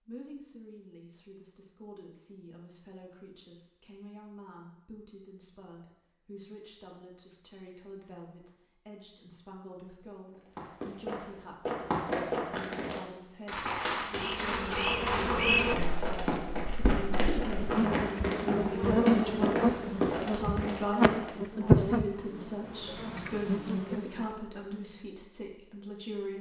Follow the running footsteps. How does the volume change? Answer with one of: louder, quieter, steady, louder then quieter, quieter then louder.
steady.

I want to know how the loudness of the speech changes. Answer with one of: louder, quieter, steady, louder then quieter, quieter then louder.
louder.